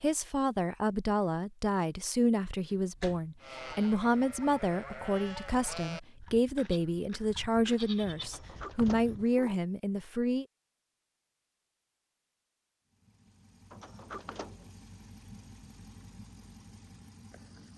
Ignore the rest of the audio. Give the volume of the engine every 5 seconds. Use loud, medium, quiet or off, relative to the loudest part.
off, off, loud, loud.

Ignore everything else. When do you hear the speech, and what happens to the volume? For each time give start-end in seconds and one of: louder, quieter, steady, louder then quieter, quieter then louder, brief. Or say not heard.
0.0-10.4 steady.